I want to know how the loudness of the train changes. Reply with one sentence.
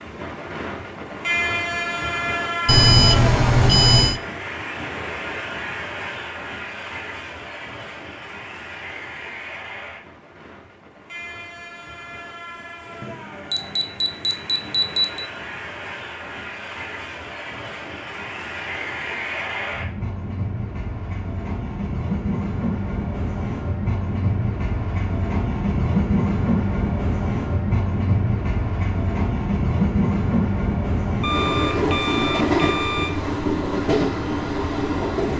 The volume of the train goes down, then up.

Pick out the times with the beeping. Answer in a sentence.
You can hear the beeping from 2.6 to 4.2 s, from 13.0 to 15.3 s and from 31.2 to 33.1 s.